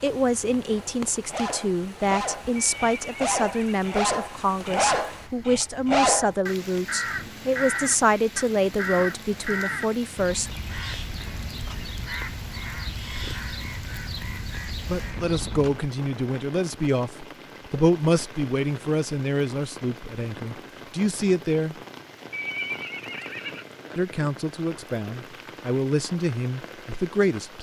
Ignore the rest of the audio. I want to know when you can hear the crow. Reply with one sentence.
The crow can be heard from 6.2 to 15.8 s.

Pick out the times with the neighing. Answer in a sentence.
The neighing can be heard from 2.5 to 3.8 s and from 22.3 to 23.6 s.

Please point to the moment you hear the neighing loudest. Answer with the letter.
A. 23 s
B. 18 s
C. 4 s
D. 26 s
A.